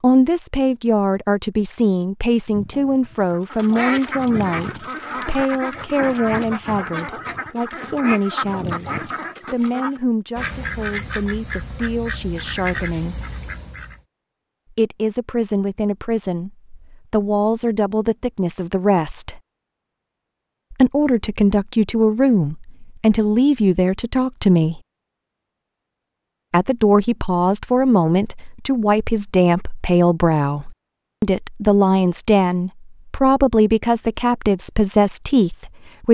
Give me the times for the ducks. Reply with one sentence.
The ducks can be heard from 3.3 to 14.0 s.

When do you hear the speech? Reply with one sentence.
You can hear the speech from 0.0 to 13.2 s, from 14.7 to 19.4 s, from 20.7 to 24.8 s and from 26.5 to 36.0 s.